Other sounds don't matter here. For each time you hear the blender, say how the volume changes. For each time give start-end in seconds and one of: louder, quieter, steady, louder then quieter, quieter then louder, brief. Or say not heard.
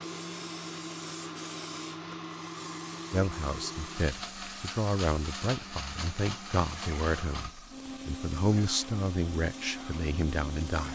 0.0-10.9 steady.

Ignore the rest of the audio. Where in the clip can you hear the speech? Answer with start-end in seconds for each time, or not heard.
3.1-10.9.